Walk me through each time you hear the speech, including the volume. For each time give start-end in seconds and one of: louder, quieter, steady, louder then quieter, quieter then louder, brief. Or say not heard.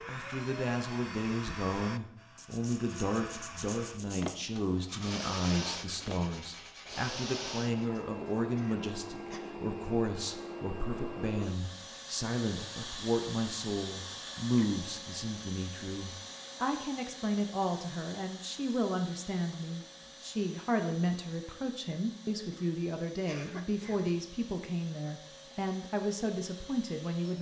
0.1-27.3 steady.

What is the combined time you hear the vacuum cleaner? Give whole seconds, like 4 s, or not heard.
27 s.